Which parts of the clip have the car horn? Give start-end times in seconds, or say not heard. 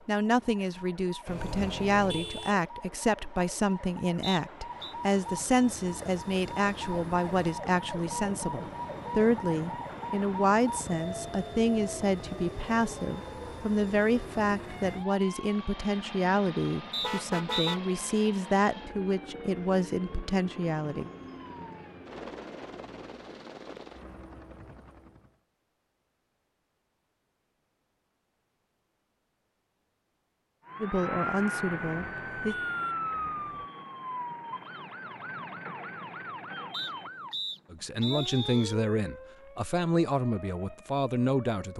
1.2-2.5, 17.0-17.8, 31.6-33.7.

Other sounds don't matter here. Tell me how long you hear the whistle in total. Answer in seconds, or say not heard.
4 s.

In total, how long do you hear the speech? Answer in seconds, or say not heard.
27 s.